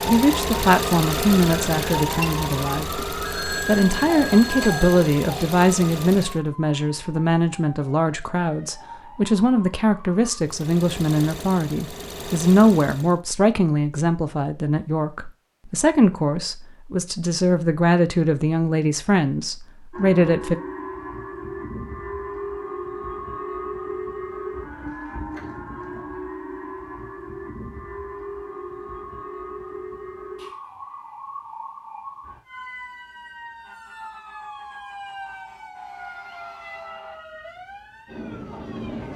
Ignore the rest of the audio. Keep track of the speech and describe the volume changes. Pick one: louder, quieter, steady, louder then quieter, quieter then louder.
steady.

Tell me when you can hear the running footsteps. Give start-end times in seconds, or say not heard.
not heard.